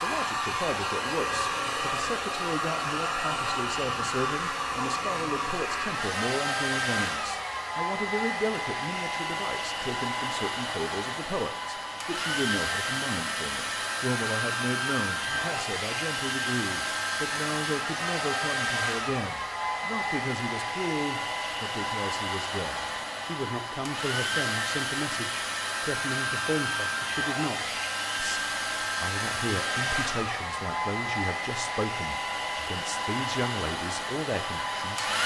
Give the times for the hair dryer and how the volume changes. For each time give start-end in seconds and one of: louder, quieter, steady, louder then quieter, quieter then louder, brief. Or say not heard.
0.0-35.2 steady.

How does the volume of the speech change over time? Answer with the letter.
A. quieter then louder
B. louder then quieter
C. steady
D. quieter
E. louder
C.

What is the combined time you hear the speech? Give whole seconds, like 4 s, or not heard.
35 s.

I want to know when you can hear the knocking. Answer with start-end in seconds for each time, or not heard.
not heard.